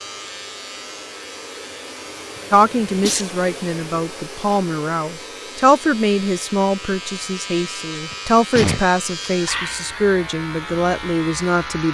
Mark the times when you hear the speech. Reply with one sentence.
You can hear the speech from 2.5 to 11.8 s.